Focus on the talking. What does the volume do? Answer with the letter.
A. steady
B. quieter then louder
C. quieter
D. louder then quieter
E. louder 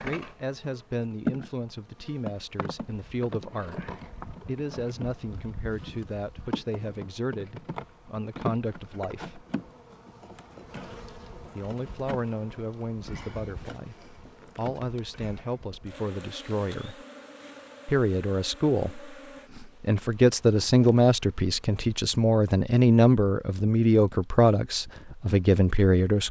E.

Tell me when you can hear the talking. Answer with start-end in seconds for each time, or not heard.
0.0-9.4, 11.6-17.1, 17.9-26.2.